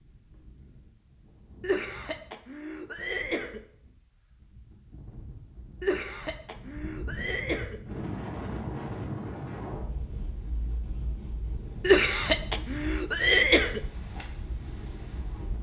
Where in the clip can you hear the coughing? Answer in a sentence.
You can hear the coughing from 1.6 to 3.6 s, from 5.8 to 7.8 s and from 11.8 to 13.8 s.